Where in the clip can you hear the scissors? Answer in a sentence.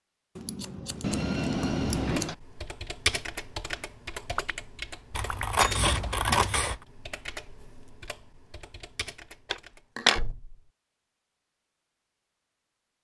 You can hear the scissors from 0.3 to 2.4 s, from 5.1 to 6.8 s and from 9.5 to 10.2 s.